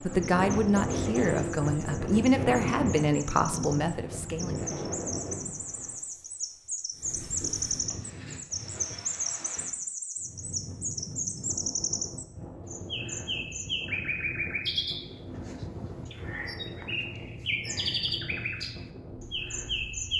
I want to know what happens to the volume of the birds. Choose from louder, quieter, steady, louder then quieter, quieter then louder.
louder.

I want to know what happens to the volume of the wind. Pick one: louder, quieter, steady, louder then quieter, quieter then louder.
quieter.